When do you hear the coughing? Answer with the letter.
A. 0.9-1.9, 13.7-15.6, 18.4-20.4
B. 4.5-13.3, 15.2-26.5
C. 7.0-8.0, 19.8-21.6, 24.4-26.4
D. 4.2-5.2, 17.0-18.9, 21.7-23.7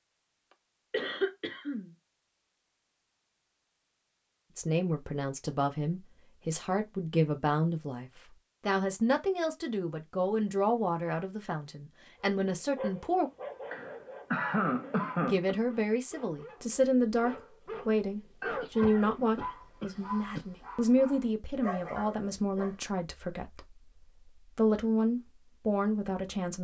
A.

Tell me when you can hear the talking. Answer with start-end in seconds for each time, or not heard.
4.5-13.3, 15.2-26.5.